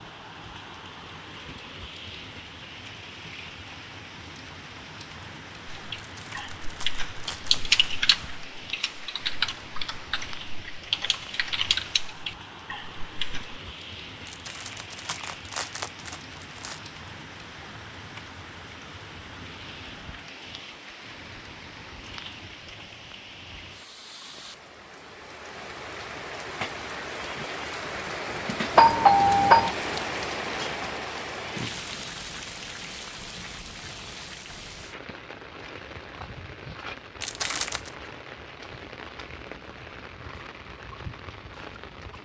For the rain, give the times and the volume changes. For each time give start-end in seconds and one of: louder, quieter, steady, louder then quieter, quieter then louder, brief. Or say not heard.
0.0-42.1 louder then quieter.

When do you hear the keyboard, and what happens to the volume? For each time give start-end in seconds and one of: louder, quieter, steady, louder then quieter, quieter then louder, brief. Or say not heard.
5.7-13.6 louder then quieter.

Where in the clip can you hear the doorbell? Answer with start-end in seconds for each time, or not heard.
28.8-29.8.